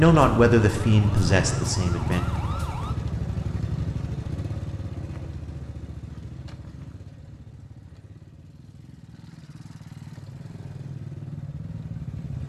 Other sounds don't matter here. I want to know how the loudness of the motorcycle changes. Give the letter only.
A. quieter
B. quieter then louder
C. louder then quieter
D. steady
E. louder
B.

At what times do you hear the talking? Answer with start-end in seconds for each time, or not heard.
0.0-2.2.